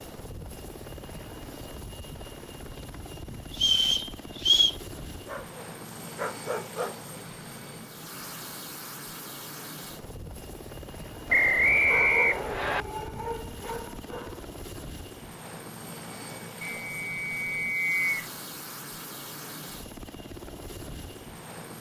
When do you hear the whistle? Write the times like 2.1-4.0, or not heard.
3.5-4.8, 11.3-12.8, 16.6-18.1.